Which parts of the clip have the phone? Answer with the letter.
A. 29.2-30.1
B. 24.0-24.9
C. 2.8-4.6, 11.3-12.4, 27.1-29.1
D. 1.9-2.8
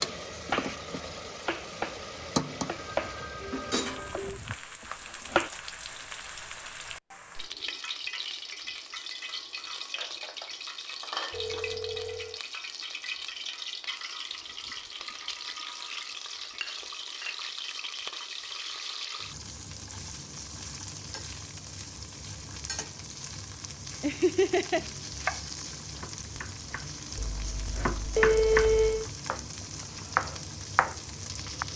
C.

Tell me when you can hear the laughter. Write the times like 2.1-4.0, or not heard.
24.0-24.9.